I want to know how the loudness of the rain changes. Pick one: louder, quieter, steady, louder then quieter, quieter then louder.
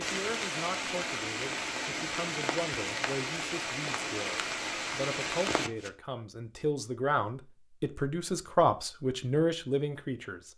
steady.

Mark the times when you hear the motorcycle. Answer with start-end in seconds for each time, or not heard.
not heard.